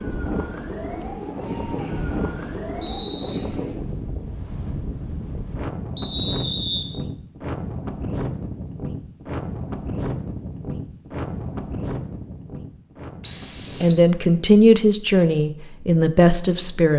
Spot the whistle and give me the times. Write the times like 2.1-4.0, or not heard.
1.8-3.4, 6.0-6.8, 13.2-14.1.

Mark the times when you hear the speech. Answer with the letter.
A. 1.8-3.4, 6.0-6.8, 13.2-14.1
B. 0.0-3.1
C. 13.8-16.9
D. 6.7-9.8
C.